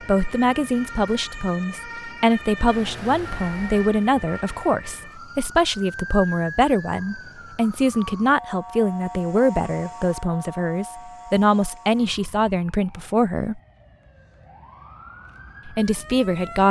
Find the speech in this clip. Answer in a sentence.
You can hear the speech from 0.1 to 13.6 s and from 15.7 to 16.6 s.